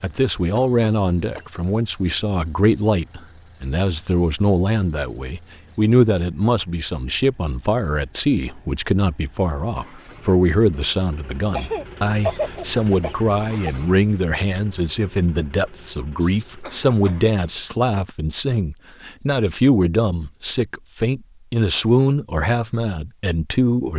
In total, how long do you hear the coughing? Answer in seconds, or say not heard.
4 s.